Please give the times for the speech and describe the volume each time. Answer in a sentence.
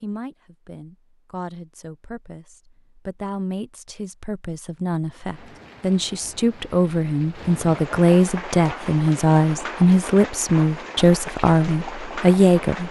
You can hear the speech from 0.0 to 12.8 s, getting louder.